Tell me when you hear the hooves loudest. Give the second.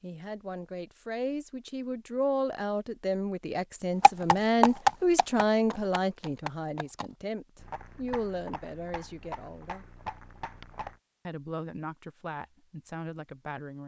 5 s.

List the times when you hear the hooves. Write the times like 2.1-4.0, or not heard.
4.0-10.9.